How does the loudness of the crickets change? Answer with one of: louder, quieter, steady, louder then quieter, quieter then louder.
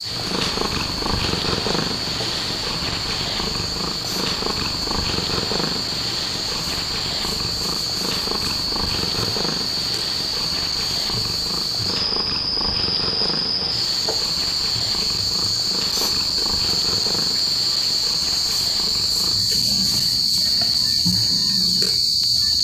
louder.